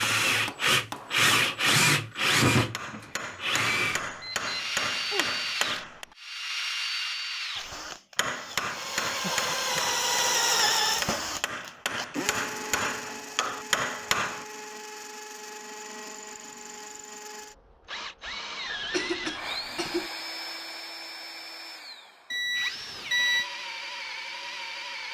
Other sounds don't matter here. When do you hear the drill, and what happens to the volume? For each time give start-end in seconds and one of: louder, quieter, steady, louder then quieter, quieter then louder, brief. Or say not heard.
0.0-25.1 quieter.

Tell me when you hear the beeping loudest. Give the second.
23 s.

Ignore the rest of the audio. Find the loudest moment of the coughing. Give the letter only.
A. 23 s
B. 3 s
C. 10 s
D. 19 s
D.